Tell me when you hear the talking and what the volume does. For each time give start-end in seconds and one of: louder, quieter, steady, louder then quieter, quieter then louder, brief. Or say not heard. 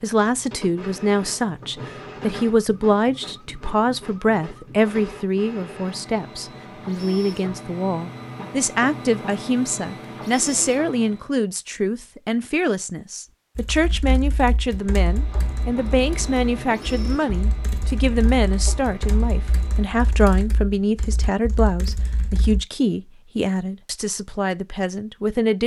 0.0-25.6 steady.